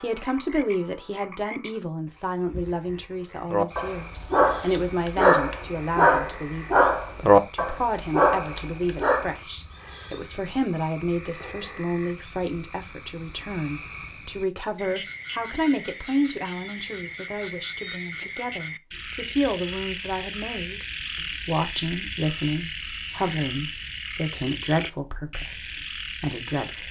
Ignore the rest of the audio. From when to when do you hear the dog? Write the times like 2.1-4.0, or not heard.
3.5-9.3.